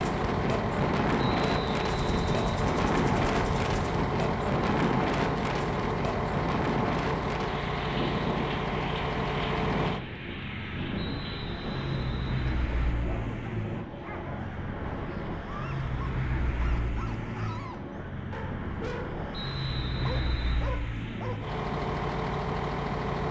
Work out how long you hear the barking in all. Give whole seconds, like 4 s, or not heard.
8 s.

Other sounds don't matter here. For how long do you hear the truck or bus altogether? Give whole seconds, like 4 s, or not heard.
23 s.